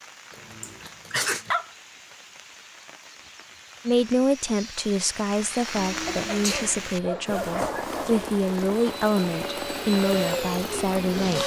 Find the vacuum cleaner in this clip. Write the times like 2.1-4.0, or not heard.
5.7-11.4.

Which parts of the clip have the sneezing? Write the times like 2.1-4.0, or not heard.
0.6-1.4, 6.0-6.8.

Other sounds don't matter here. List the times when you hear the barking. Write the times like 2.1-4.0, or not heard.
0.3-1.7, 6.2-8.1.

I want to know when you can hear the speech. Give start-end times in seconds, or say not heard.
3.9-11.4.